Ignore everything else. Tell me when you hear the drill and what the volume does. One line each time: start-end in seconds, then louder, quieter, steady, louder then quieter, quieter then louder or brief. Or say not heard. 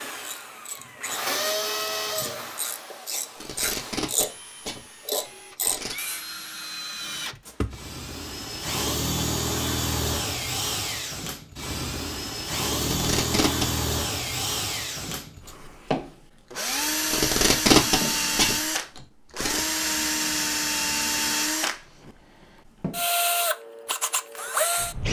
0.0-25.0 louder.